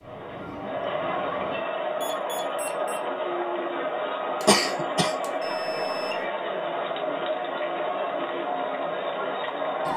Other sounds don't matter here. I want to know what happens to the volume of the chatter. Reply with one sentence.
The loudness of the chatter stays about the same.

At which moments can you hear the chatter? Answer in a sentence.
The chatter can be heard from 0.0 to 9.9 s.